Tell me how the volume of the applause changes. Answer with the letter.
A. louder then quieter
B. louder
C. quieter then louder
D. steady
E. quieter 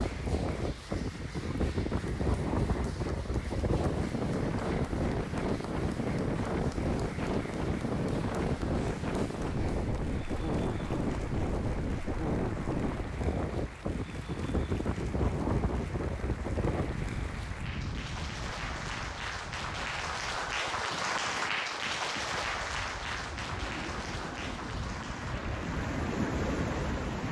B.